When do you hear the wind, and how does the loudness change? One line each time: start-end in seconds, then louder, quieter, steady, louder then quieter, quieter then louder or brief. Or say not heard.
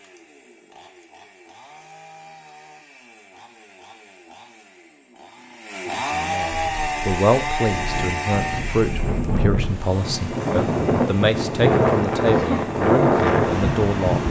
6.6-14.2 louder.